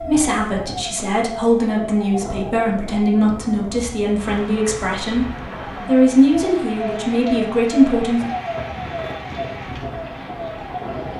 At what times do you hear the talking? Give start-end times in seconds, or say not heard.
0.0-8.2.